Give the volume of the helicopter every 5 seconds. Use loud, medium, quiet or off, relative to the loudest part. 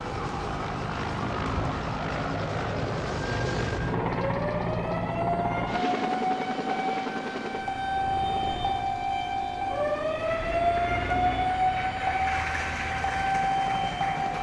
loud, loud, medium.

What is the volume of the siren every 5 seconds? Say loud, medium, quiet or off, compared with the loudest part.
medium, loud, loud.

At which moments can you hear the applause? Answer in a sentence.
The applause can be heard from 10.2 to 14.3 s.